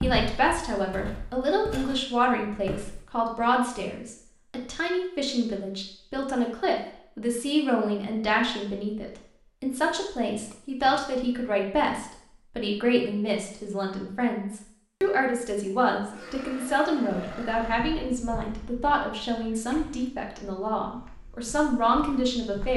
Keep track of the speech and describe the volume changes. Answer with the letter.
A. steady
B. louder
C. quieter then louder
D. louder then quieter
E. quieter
A.